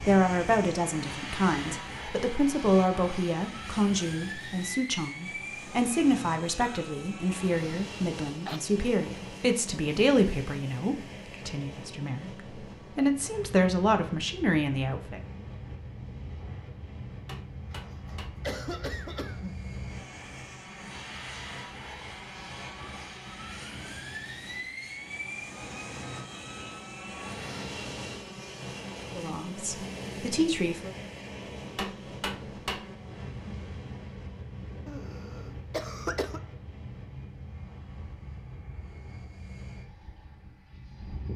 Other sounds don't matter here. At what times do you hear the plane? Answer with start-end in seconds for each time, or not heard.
0.0-41.3.